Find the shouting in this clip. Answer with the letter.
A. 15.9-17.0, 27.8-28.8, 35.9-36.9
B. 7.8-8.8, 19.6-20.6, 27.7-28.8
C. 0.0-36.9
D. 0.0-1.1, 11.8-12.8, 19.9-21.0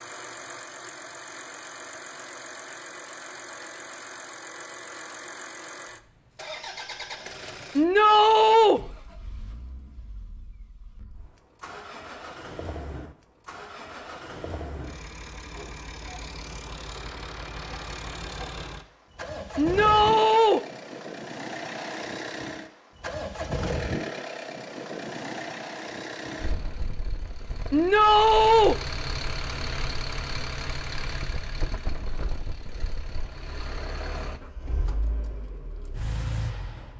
B.